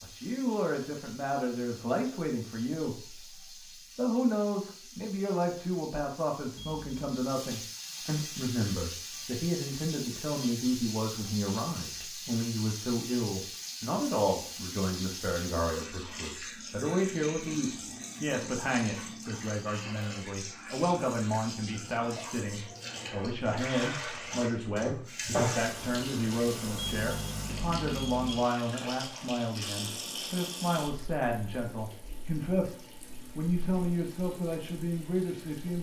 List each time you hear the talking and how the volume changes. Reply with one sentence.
The talking can be heard from 0.0 to 35.7 s, at a steady volume.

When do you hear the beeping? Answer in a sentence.
You can hear the beeping from 6.5 to 7.0 s and from 26.8 to 28.4 s.